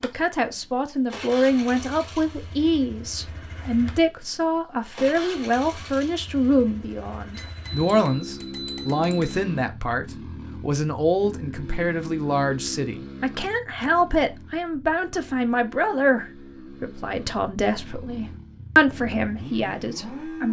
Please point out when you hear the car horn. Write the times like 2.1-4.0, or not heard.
not heard.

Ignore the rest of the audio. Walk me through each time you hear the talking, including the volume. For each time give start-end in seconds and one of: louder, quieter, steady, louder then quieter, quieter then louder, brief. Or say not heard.
0.0-20.4 steady.